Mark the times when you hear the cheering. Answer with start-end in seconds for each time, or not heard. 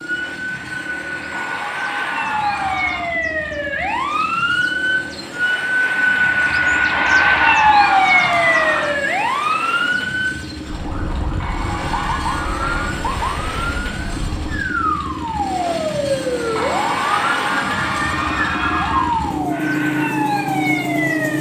1.3-3.1, 6.9-9.0, 11.4-12.9, 16.6-19.2.